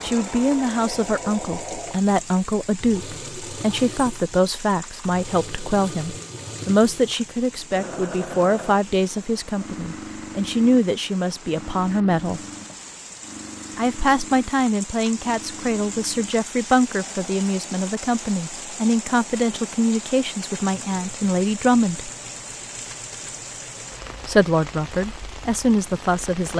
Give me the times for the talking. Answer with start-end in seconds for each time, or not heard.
0.0-12.4, 13.8-22.1, 24.2-26.5.